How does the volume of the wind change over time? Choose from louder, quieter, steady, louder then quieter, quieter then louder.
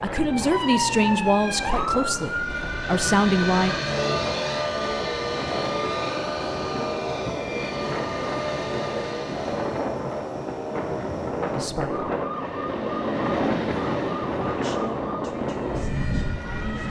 louder.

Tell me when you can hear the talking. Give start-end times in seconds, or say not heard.
0.0-3.8, 11.5-12.1, 14.6-16.8.